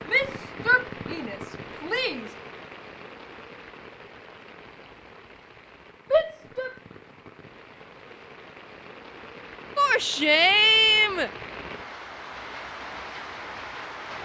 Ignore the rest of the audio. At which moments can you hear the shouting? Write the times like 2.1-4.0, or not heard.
0.1-2.3, 6.1-6.8, 9.8-11.3.